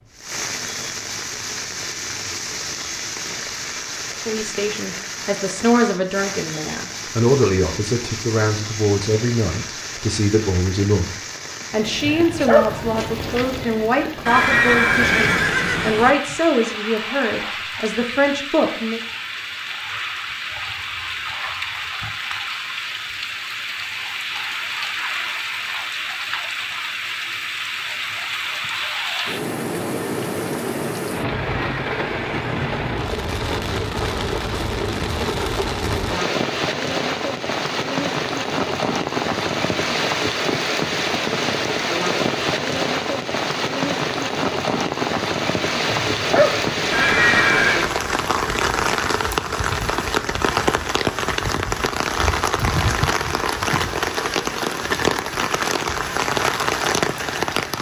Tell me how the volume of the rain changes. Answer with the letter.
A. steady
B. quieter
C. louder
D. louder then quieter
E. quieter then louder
C.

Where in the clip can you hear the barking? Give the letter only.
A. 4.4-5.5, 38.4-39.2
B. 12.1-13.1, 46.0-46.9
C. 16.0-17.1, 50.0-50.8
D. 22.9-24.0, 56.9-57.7
B.